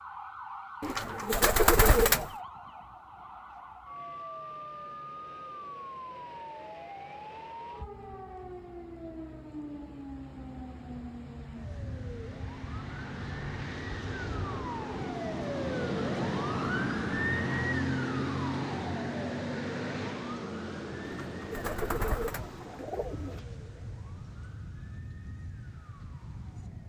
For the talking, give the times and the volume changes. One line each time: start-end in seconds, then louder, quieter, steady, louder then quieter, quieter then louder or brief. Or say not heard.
not heard.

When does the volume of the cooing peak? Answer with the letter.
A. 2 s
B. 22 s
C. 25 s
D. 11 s
A.